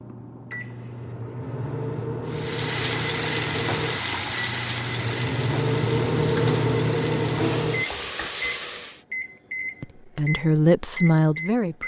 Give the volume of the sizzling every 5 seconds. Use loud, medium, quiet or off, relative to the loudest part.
loud, medium, off.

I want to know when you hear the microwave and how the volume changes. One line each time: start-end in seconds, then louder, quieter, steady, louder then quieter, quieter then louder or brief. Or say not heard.
0.0-11.8 louder then quieter.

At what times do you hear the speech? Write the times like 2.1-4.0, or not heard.
9.8-11.8.